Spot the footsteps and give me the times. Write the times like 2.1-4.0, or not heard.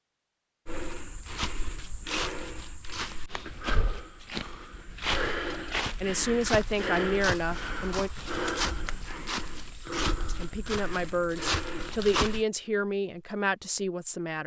0.7-12.4.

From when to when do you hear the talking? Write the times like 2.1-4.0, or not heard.
6.0-8.1, 10.2-14.4.